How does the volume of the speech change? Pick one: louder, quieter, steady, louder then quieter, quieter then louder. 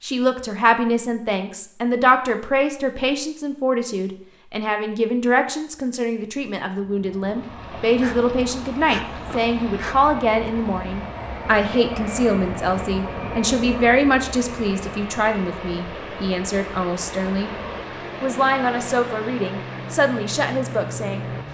steady.